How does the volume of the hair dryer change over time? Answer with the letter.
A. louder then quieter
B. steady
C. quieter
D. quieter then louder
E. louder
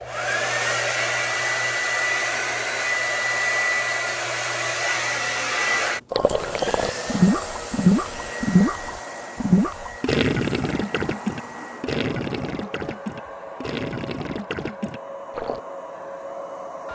C.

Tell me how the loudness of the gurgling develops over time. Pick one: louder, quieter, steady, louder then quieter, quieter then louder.
quieter.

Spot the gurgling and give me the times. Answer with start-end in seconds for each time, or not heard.
6.1-15.6.